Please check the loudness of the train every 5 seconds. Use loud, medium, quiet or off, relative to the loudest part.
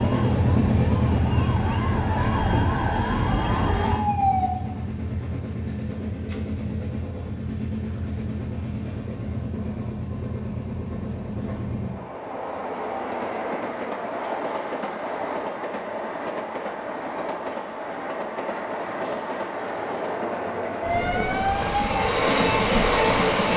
loud, medium, medium, medium, loud.